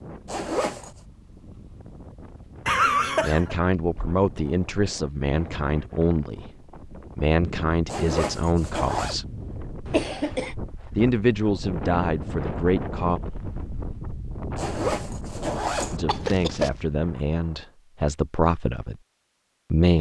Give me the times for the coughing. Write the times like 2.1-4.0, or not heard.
2.6-3.5, 9.8-10.6, 16.1-16.7.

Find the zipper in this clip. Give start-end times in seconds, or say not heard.
0.2-0.9, 7.8-9.2, 14.6-15.9.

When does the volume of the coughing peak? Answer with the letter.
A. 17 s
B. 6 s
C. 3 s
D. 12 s
C.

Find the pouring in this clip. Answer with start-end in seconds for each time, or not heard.
not heard.